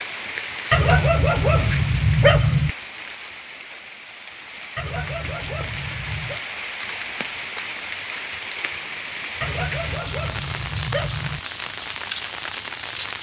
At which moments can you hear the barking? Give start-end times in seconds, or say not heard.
0.7-2.7, 4.8-6.4, 9.4-11.4.